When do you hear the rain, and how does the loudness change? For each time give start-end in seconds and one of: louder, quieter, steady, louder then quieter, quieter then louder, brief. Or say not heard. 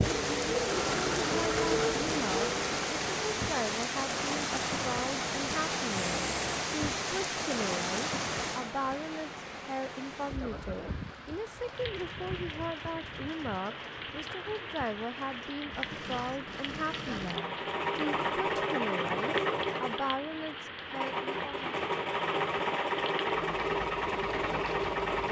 0.0-25.2 quieter.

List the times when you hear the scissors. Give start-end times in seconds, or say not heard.
not heard.